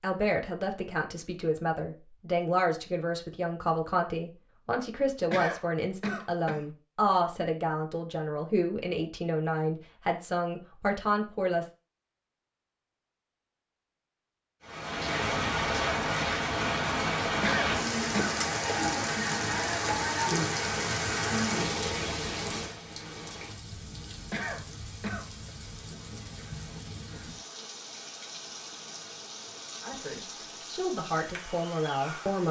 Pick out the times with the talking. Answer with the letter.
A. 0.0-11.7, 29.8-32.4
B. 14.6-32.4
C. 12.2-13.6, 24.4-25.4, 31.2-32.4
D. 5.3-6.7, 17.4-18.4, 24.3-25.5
A.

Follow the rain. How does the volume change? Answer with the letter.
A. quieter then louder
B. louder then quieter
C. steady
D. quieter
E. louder
D.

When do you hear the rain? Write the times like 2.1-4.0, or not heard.
14.6-32.4.